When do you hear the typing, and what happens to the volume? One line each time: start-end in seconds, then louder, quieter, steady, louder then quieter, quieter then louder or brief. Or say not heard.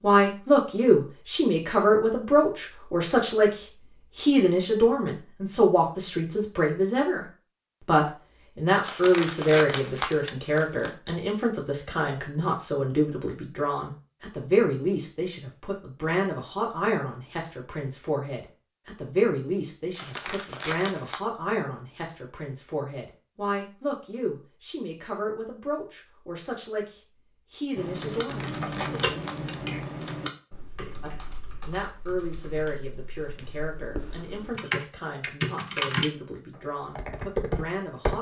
27.8-36.1 quieter then louder
37.0-38.1 brief.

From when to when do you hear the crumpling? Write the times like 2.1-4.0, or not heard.
8.8-10.9, 19.9-21.2, 28.1-30.2.